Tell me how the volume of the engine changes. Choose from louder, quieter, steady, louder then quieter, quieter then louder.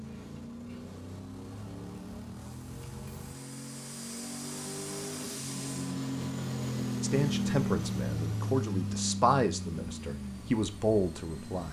louder then quieter.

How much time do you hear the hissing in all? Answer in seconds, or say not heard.
6 s.